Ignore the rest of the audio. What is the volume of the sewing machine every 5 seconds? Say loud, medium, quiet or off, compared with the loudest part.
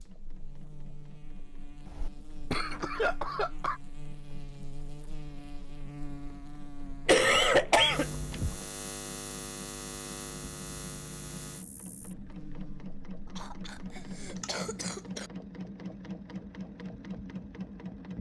quiet, quiet, loud, loud.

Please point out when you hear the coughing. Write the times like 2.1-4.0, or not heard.
1.9-3.8, 7.0-8.6, 13.3-15.3.